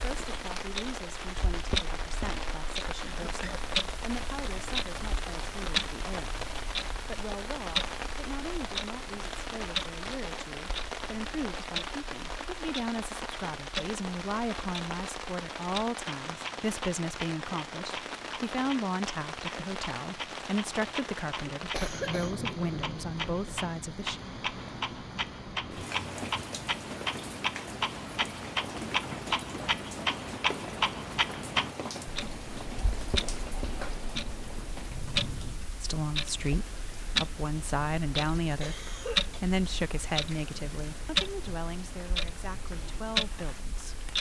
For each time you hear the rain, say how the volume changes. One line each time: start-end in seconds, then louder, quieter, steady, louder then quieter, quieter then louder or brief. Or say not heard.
0.0-44.1 quieter.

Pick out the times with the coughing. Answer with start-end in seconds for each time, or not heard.
3.0-3.6, 21.7-22.4, 38.4-39.4.